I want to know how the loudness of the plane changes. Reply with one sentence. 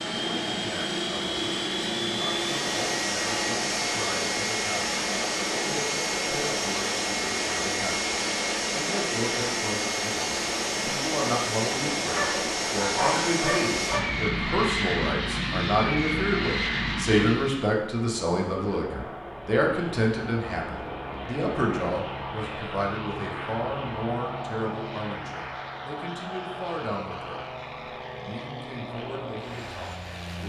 The volume of the plane goes down.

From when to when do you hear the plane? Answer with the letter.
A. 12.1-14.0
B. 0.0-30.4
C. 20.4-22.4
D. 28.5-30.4
B.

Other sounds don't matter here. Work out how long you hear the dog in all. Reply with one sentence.
The dog can be heard for 2 seconds in total.